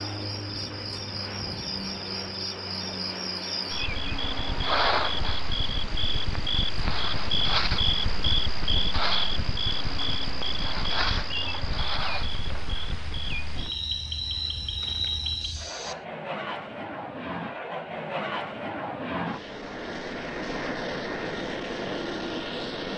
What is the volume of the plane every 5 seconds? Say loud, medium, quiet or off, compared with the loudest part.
medium, quiet, quiet, loud, loud.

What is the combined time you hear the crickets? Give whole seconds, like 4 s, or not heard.
16 s.